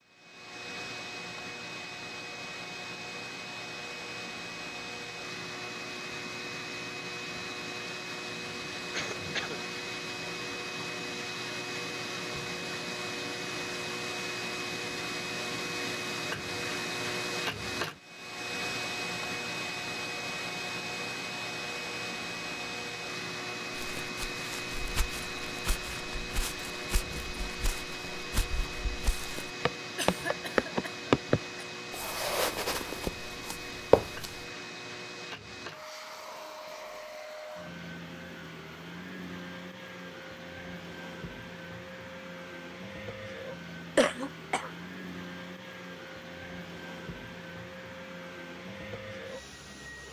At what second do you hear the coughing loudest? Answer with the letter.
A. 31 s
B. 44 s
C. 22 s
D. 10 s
B.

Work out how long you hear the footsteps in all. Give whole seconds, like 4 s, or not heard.
11 s.